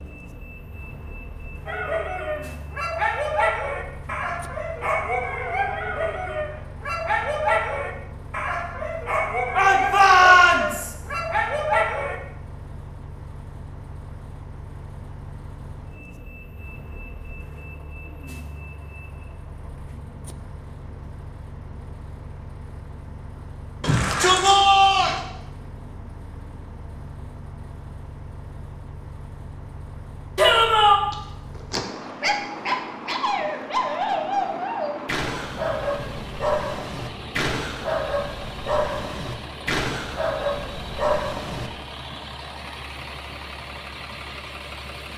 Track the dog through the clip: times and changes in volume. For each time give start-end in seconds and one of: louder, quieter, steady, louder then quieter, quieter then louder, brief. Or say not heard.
1.6-12.2 steady
31.1-41.7 steady.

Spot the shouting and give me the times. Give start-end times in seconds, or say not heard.
9.5-10.9, 23.8-25.2, 30.4-31.0.